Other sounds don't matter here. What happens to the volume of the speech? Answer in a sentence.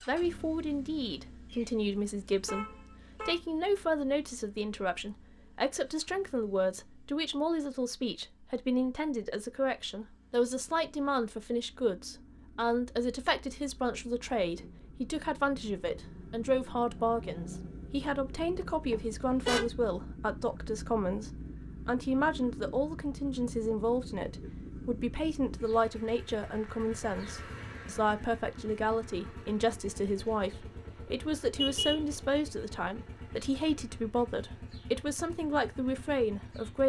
The volume of the speech stays about the same.